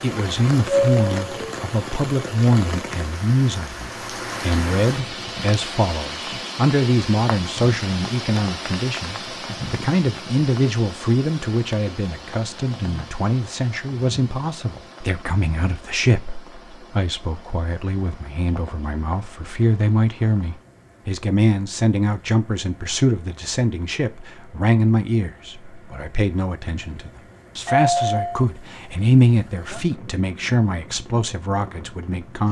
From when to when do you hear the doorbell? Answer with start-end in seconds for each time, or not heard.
0.7-1.4, 27.6-28.4.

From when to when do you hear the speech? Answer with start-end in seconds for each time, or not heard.
0.0-32.4.